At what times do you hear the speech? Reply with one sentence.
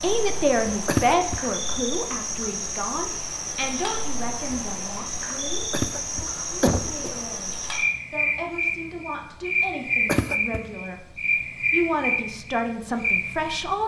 You can hear the speech from 0.0 to 13.8 s.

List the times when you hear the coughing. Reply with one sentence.
The coughing can be heard from 0.8 to 1.4 s, from 5.7 to 7.2 s and from 10.1 to 10.6 s.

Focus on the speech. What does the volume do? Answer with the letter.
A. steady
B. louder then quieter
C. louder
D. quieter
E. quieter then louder
E.